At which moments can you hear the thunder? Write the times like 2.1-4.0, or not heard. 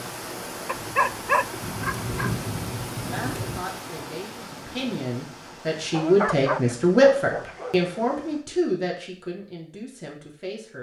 1.6-3.6.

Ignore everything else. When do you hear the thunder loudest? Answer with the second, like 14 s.
2 s.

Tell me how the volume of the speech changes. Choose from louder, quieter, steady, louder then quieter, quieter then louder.
louder then quieter.